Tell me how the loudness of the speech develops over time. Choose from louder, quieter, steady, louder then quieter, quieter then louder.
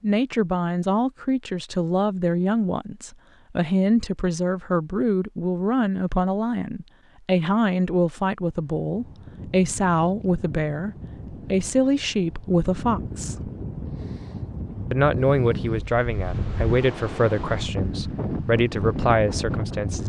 steady.